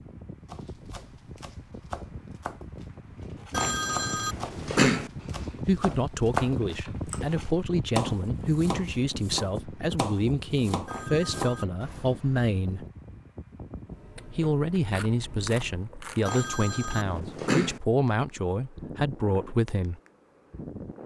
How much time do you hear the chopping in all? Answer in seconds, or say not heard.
12 s.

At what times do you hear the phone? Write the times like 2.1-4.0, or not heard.
3.5-5.1, 10.8-11.8, 16.2-17.8.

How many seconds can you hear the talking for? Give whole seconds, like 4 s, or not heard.
13 s.